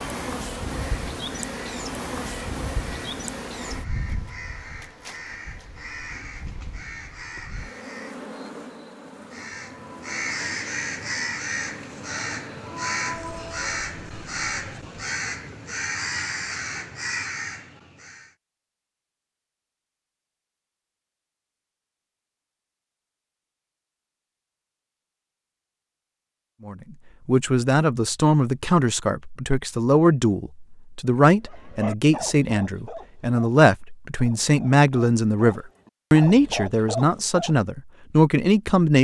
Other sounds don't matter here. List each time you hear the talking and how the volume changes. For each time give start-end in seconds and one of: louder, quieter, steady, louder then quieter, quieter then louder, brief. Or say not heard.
26.6-38.9 steady.